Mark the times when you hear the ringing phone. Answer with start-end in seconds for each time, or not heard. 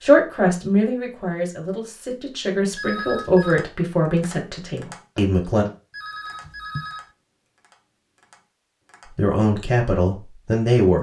2.8-3.6, 5.9-7.1.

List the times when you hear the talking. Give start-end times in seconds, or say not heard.
0.0-5.7, 9.1-10.9.